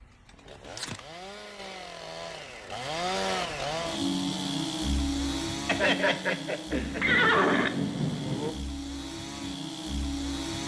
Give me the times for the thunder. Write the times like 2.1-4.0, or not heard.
6.8-8.6.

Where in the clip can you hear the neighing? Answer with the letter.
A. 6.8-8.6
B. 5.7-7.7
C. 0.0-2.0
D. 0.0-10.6
B.